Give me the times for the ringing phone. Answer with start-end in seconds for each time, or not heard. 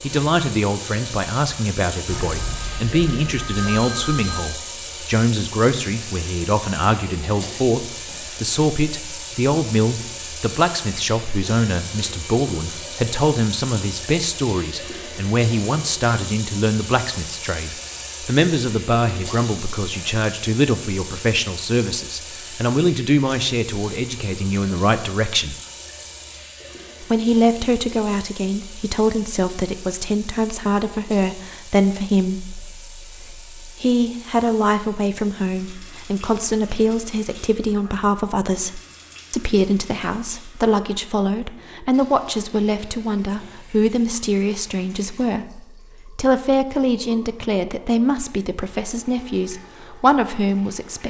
2.0-4.6.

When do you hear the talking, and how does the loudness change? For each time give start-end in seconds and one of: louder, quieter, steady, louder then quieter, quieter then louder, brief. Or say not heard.
0.0-25.6 steady
27.0-51.0 steady.